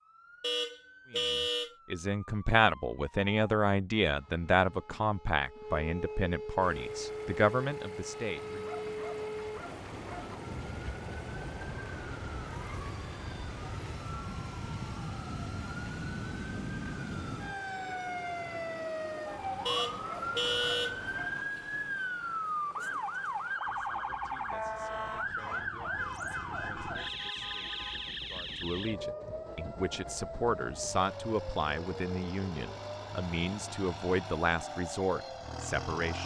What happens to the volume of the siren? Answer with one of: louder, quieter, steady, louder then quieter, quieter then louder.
louder then quieter.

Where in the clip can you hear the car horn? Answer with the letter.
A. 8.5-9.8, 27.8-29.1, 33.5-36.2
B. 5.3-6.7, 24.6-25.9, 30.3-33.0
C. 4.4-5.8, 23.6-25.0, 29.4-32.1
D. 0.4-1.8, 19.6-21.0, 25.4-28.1
D.